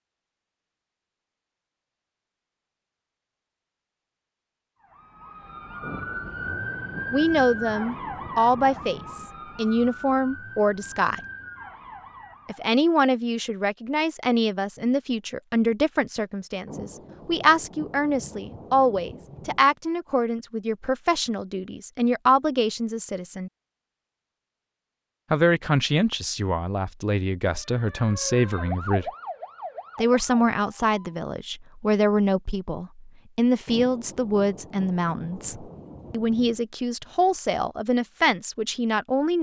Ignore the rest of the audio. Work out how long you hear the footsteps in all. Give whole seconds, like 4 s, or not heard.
not heard.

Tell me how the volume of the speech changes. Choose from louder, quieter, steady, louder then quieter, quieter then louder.
steady.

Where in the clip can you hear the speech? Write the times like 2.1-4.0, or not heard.
7.1-11.2, 12.4-23.5, 25.3-29.1, 29.9-39.3.